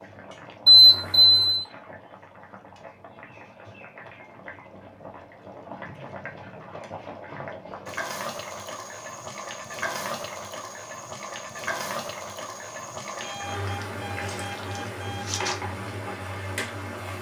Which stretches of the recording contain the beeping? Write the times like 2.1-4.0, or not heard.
0.7-1.6, 13.2-15.6.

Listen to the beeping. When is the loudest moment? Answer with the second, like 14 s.
1 s.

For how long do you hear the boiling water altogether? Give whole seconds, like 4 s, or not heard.
17 s.